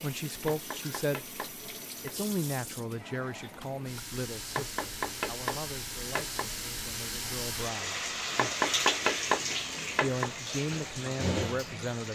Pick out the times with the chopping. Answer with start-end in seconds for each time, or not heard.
0.4-2.1, 4.5-6.5, 8.3-10.3.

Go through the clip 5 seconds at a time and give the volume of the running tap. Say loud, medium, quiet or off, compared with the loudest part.
medium, loud, loud.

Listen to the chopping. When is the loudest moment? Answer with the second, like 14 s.
9 s.